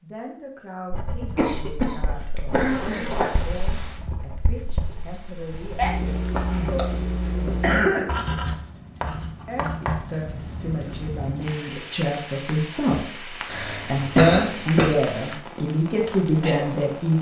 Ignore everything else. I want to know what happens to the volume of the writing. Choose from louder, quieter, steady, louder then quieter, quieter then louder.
louder.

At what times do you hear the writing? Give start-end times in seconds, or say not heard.
0.9-11.2.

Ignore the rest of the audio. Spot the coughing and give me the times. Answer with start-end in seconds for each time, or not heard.
1.4-3.3, 5.8-8.1, 13.4-14.9.